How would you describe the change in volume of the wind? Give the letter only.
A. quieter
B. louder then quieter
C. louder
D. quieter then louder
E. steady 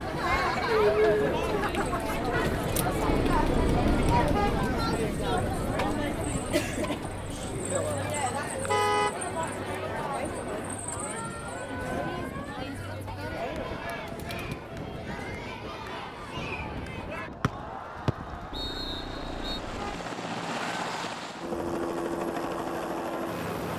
A.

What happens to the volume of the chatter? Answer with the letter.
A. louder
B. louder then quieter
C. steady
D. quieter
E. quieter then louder
D.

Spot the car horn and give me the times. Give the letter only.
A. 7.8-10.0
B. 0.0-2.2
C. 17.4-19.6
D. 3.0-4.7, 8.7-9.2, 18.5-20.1
D.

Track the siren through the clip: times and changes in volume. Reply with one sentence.
You can't hear the siren here.